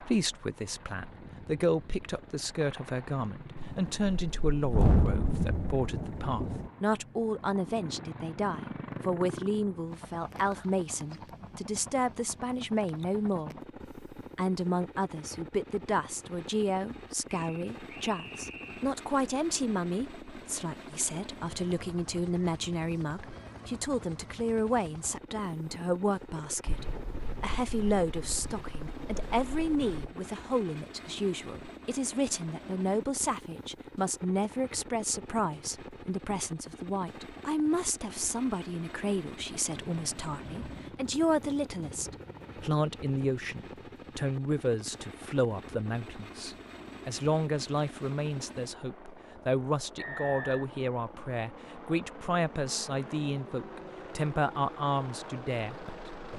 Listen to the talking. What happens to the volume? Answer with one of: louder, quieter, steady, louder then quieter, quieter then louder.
steady.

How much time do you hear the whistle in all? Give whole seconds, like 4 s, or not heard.
2 s.